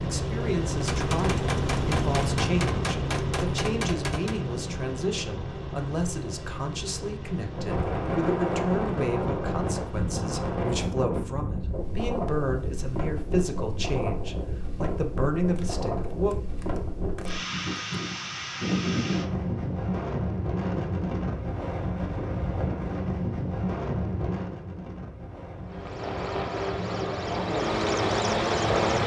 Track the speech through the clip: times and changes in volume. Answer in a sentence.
The speech can be heard from 0.0 to 16.4 s, at a steady volume.